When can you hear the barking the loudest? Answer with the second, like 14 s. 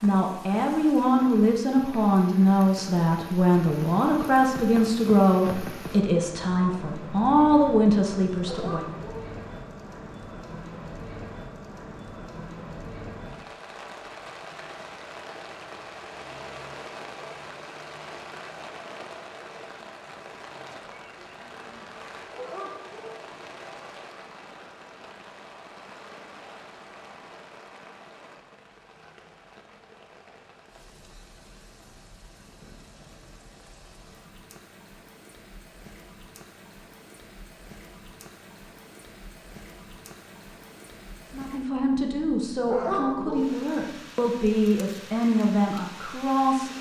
43 s.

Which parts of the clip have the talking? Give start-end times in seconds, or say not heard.
0.0-8.8, 41.3-46.7.